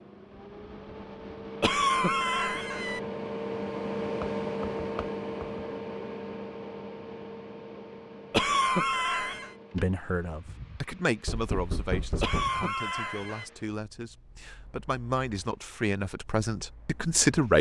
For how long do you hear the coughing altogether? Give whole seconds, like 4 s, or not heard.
4 s.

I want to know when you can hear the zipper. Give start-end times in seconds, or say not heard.
not heard.